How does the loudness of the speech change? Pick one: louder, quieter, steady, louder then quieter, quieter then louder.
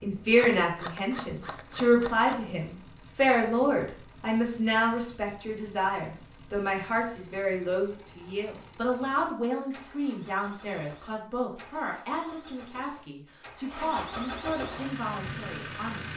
quieter.